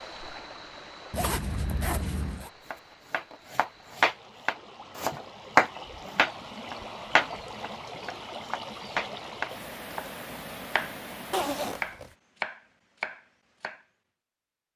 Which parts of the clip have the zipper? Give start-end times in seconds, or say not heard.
1.1-2.5, 11.3-12.1.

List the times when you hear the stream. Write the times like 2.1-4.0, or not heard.
0.0-11.9.